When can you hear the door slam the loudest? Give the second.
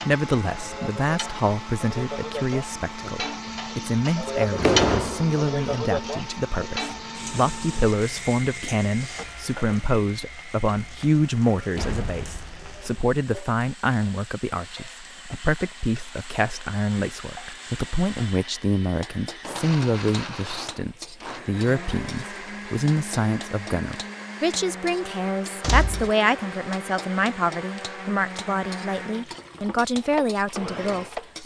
5 s.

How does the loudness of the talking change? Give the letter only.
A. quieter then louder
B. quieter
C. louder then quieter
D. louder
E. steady
E.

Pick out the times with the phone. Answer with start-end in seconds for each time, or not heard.
not heard.